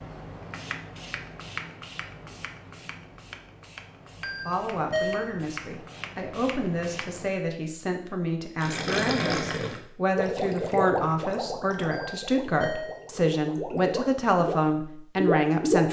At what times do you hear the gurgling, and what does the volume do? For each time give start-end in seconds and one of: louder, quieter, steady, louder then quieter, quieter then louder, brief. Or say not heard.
8.6-15.8 quieter then louder.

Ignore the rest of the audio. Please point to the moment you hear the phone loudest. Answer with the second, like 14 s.
5 s.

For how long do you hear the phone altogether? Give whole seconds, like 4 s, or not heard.
2 s.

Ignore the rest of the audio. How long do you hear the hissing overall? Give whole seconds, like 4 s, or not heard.
7 s.